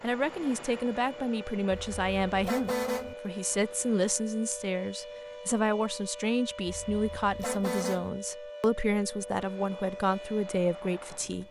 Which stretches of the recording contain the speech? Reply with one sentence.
You can hear the speech from 0.0 to 11.4 s.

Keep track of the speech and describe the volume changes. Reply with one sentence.
The loudness of the speech stays about the same.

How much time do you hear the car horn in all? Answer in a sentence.
You can hear the car horn for 3 seconds altogether.